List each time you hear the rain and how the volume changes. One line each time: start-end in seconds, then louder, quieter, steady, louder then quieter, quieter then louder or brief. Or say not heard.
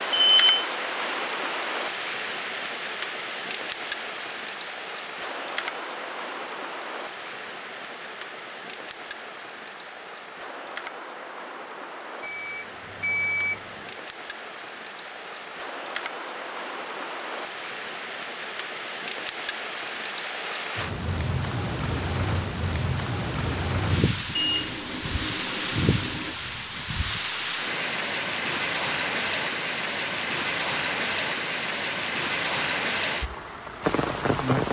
0.0-34.6 quieter then louder.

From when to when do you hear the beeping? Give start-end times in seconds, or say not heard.
0.1-0.7, 12.2-13.8, 24.4-26.4.